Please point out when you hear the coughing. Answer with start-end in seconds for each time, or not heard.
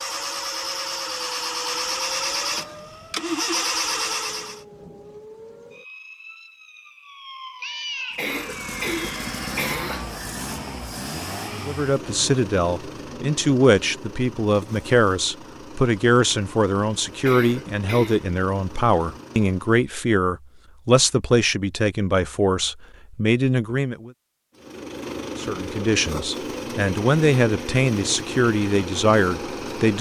8.2-10.1, 17.2-18.2.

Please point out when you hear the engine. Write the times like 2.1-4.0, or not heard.
0.0-4.7, 8.1-19.9, 24.6-29.9.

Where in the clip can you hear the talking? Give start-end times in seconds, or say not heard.
11.6-24.1, 25.4-29.9.